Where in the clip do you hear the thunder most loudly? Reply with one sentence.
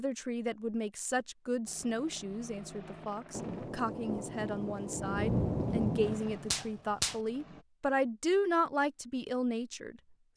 The volume of the thunder peaks at 5 seconds.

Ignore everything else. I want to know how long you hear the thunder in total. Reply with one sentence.
The thunder can be heard for 4 seconds in total.